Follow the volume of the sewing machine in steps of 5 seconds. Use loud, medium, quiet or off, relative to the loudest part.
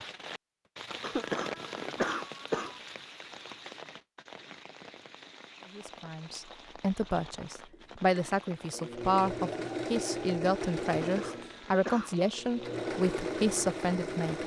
off, loud, loud.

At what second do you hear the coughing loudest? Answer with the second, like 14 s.
2 s.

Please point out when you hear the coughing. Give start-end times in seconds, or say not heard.
1.0-2.8, 10.8-12.3.